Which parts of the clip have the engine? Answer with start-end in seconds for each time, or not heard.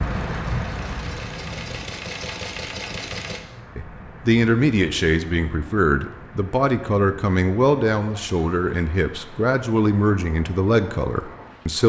0.0-3.4.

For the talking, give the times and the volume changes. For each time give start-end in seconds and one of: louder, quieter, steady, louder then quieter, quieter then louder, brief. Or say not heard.
3.8-11.8 steady.